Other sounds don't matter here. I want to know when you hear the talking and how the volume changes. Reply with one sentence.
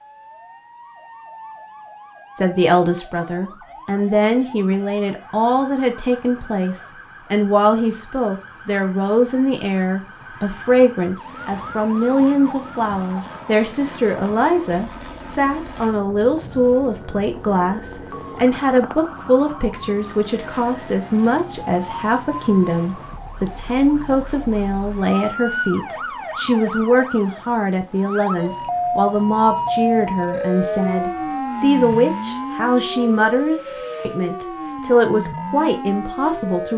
The talking can be heard from 2.4 to 36.7 s, at a steady volume.